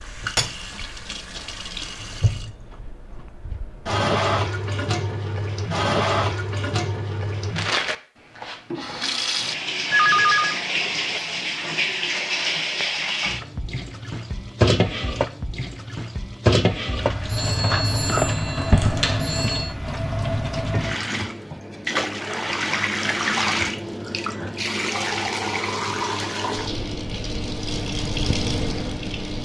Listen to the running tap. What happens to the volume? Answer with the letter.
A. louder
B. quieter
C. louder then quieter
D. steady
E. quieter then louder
D.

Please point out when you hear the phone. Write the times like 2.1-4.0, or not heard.
9.9-10.6, 17.2-19.8.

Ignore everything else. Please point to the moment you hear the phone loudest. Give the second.
10 s.